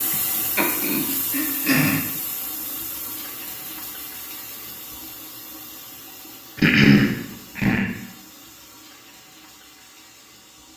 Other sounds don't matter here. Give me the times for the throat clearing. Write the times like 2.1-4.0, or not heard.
0.1-2.0, 6.5-7.9.